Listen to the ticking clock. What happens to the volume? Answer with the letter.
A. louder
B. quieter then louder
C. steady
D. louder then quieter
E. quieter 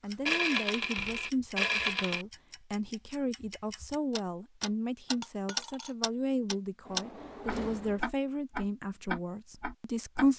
A.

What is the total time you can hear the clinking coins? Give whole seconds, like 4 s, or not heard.
3 s.